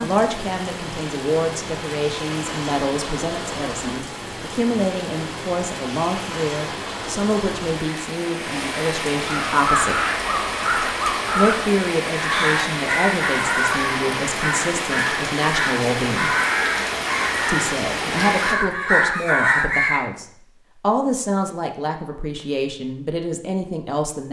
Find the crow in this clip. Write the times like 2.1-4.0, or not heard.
9.2-20.1.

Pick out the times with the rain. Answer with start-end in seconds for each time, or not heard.
0.0-18.6.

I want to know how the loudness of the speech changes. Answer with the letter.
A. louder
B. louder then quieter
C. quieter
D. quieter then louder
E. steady
E.